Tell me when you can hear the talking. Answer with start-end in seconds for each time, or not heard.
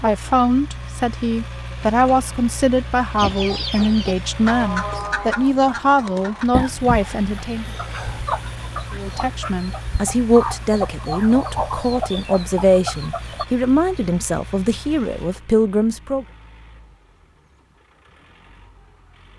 0.0-7.7, 8.9-16.2.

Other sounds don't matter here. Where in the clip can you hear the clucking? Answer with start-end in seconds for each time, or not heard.
3.1-13.4.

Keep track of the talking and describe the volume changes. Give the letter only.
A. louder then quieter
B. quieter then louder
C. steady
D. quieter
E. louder
C.